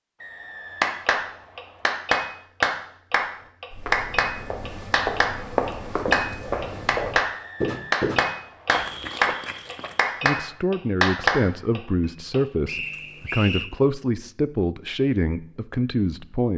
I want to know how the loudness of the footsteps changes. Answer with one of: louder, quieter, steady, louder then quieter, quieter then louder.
louder then quieter.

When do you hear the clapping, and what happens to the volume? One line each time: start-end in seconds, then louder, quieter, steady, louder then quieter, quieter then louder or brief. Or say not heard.
0.8-12.4 steady.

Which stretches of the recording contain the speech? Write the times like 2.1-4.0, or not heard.
10.2-16.5.